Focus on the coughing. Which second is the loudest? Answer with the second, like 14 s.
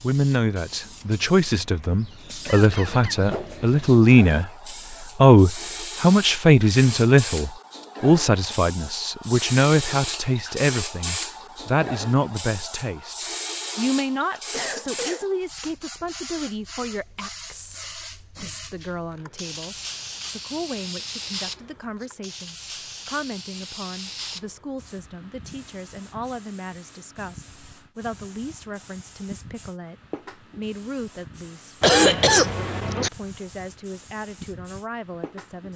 32 s.